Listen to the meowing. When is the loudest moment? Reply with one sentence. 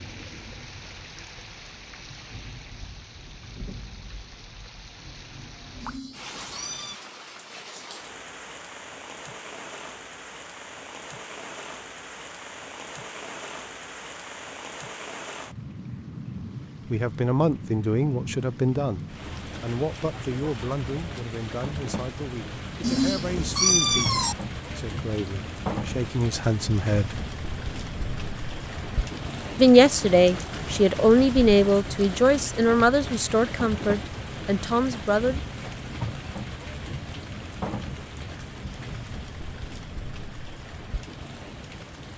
The volume of the meowing peaks at 24 seconds.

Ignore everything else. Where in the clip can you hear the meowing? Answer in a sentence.
The meowing can be heard from 5.8 to 7.0 s and from 22.8 to 24.4 s.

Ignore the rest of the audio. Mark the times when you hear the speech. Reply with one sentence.
The speech can be heard from 16.9 to 27.1 s and from 29.6 to 35.4 s.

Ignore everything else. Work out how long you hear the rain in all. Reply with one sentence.
You can hear the rain for 42 seconds altogether.